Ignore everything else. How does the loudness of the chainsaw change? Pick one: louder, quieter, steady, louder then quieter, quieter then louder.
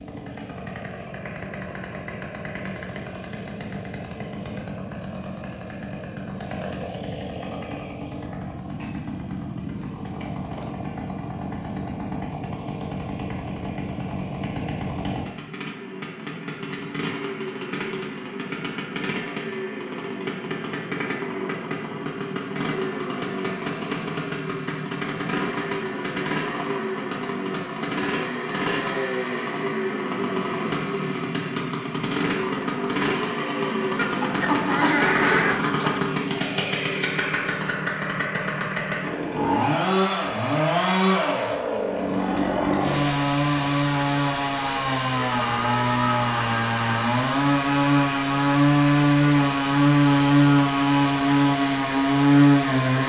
louder.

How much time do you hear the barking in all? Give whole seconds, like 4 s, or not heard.
not heard.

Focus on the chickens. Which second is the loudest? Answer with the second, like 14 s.
35 s.